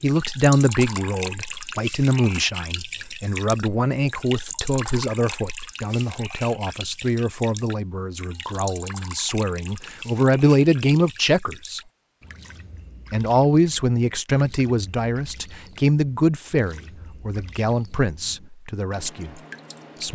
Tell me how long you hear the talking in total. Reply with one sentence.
You can hear the talking for 18 seconds altogether.